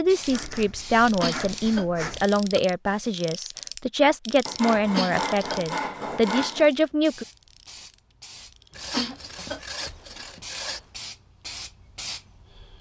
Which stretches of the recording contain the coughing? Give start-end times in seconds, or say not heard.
1.0-2.6, 4.8-5.7, 8.8-10.0.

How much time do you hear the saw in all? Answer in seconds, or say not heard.
6 s.